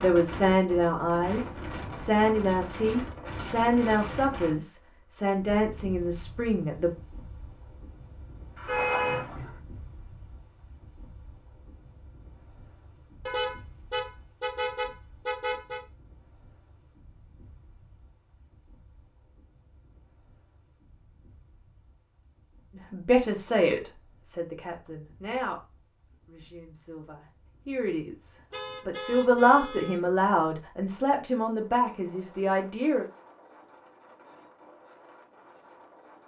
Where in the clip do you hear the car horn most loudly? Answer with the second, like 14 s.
9 s.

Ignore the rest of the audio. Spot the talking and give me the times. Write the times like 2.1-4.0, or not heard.
0.0-6.9, 22.8-25.6, 26.2-33.0.